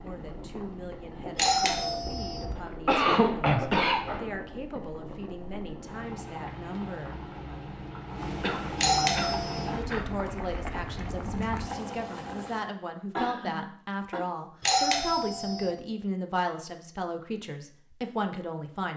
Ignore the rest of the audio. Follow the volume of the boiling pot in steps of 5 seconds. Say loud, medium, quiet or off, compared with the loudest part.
medium, loud, loud, off.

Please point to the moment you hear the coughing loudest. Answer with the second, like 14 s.
3 s.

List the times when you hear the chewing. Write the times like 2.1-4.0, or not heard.
not heard.